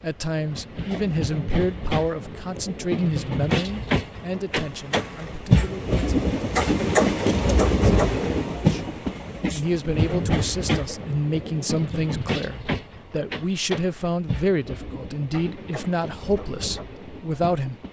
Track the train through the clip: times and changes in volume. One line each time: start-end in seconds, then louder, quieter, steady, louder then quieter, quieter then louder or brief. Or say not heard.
0.0-17.8 louder then quieter.